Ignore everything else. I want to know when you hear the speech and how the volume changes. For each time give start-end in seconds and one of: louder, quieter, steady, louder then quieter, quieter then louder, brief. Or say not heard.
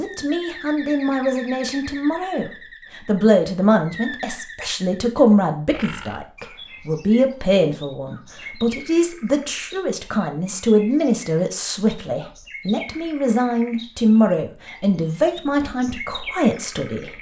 0.0-17.1 steady.